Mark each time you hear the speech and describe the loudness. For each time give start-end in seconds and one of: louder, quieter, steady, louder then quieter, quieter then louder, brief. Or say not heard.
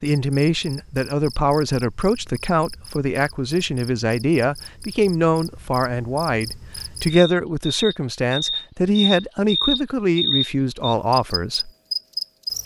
0.0-11.7 steady.